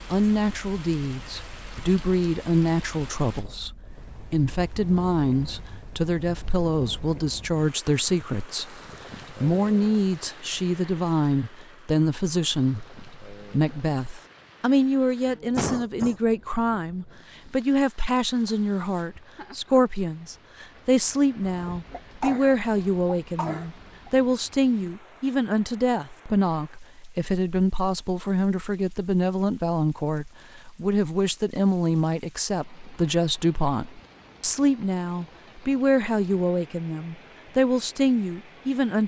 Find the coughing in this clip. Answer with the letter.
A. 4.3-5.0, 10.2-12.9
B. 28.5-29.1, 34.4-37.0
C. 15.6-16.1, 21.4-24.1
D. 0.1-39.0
C.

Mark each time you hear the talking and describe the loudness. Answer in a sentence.
The talking can be heard from 0.1 to 39.0 s, at a steady volume.